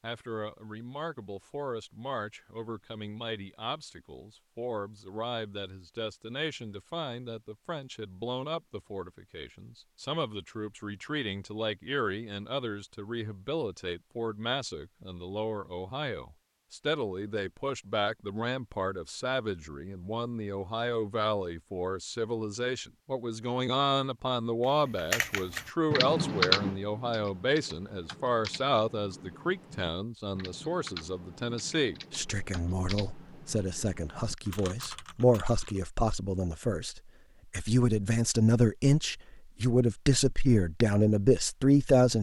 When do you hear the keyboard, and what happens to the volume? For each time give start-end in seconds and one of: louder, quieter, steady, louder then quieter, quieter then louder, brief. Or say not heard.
24.9-35.9 quieter.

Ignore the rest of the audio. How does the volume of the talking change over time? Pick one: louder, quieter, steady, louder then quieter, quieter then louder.
louder.